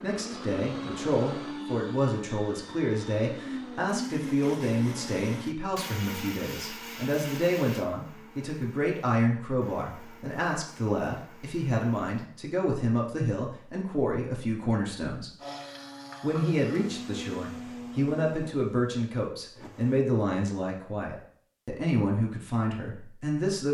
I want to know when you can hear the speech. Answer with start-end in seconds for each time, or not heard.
0.0-15.3, 16.2-23.6.